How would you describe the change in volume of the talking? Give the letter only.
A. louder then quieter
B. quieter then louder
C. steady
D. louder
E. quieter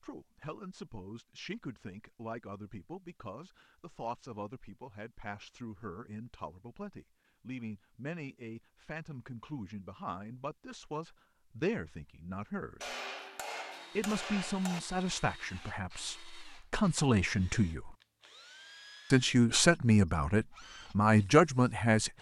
D.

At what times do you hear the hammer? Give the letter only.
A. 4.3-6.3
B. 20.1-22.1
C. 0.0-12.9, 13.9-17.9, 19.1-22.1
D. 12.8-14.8
D.